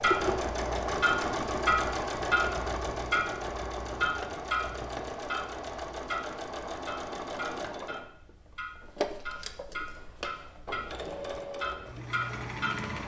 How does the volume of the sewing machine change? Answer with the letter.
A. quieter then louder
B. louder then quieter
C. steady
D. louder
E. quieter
E.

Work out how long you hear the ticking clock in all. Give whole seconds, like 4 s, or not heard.
13 s.